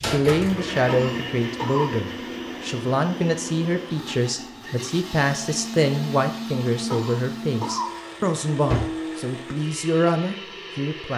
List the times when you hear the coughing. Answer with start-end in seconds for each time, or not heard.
0.8-1.9, 6.9-8.0.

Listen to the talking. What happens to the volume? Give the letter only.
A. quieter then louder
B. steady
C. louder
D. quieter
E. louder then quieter
B.